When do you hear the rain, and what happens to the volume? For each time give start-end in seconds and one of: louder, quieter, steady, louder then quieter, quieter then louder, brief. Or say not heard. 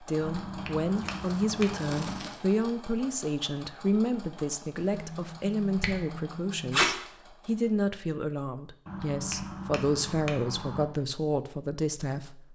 not heard.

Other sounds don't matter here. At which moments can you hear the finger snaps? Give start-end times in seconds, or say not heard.
0.2-2.2, 4.8-6.8, 8.8-10.8.